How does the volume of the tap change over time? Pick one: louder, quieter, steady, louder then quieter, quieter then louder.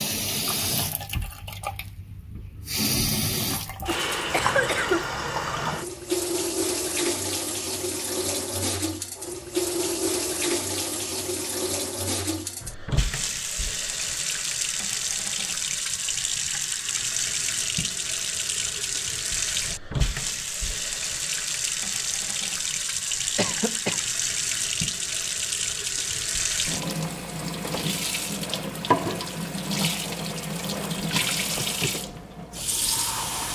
steady.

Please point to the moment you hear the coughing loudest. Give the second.
5 s.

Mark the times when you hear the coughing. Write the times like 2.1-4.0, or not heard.
3.9-5.0, 23.4-24.1.